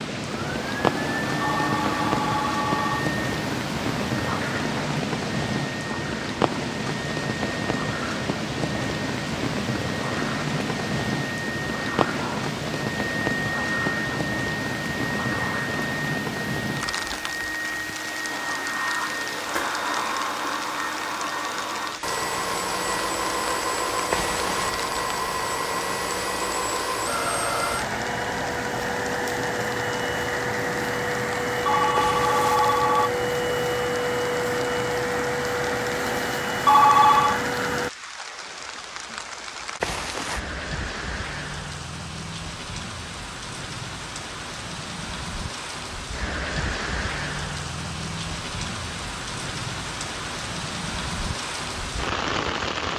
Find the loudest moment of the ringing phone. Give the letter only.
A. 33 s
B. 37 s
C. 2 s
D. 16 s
B.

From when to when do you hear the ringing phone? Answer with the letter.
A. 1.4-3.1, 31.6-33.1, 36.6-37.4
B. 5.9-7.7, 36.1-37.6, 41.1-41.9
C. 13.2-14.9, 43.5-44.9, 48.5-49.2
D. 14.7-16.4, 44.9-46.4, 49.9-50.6
A.